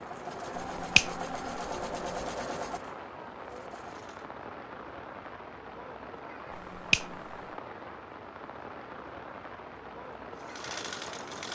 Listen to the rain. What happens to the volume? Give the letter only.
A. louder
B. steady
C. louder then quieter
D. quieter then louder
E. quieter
B.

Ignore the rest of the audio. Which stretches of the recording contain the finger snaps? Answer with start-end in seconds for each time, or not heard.
0.6-2.1, 6.5-7.3.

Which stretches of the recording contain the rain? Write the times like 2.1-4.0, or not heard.
0.0-11.5.